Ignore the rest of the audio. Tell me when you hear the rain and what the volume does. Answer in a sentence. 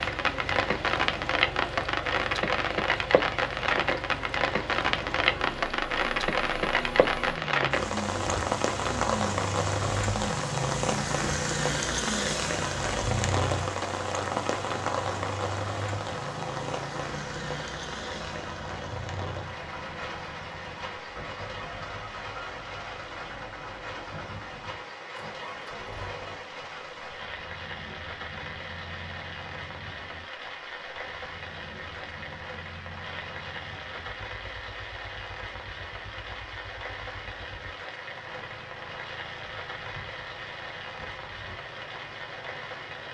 You can hear the rain from 0.0 to 43.0 s, getting quieter.